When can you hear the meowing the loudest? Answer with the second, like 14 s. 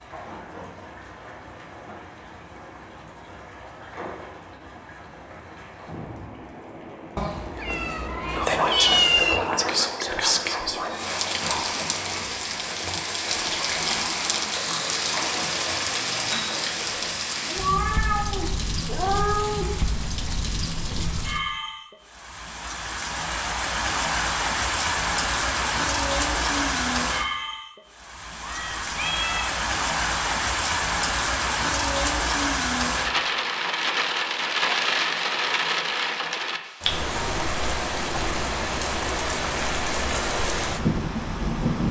9 s.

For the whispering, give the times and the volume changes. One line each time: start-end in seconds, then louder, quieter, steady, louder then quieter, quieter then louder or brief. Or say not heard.
8.2-17.2 quieter.